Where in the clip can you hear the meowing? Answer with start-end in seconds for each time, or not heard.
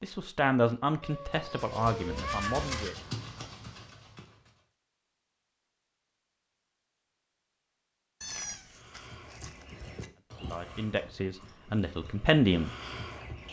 1.0-2.8, 8.2-10.1.